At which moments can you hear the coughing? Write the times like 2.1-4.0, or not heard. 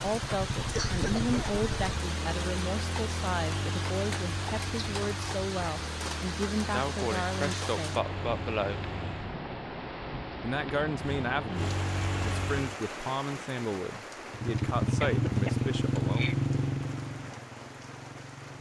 0.7-1.6, 6.7-8.8, 15.1-16.4.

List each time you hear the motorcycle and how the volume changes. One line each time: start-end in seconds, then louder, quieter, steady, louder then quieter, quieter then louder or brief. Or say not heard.
0.0-9.3 quieter
10.9-12.8 brief
14.3-18.5 quieter.